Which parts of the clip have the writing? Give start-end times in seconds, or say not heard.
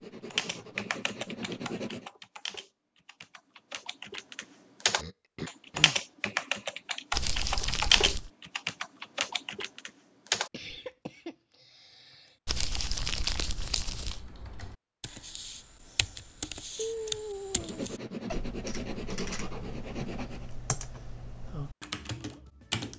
0.0-2.1, 17.5-20.5.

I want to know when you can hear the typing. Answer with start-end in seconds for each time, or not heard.
0.3-10.8, 13.9-22.9.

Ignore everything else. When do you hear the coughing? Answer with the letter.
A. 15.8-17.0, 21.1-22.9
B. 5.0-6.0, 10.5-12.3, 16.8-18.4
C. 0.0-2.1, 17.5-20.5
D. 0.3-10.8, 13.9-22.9
B.